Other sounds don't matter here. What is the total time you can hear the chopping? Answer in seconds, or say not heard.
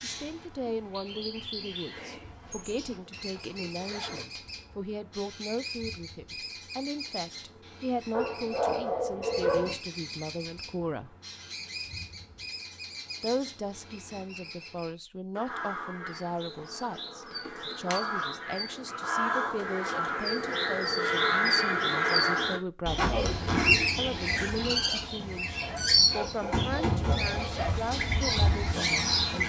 not heard.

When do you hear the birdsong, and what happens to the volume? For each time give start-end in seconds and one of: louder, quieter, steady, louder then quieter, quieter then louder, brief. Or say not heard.
0.0-29.4 louder.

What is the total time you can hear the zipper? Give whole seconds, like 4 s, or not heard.
4 s.